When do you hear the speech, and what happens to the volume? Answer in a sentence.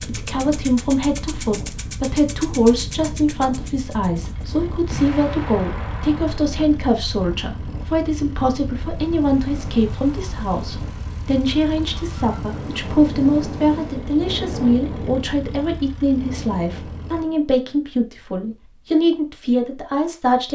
You can hear the speech from 0.1 to 20.5 s, at a steady volume.